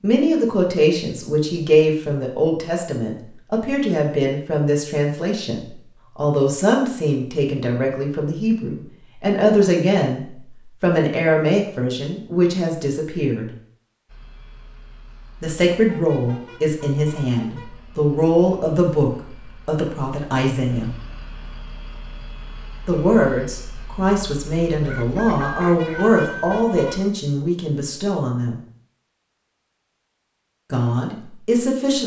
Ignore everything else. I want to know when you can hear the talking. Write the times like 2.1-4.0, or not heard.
0.0-13.5, 15.4-20.9, 22.9-28.6, 30.7-32.0.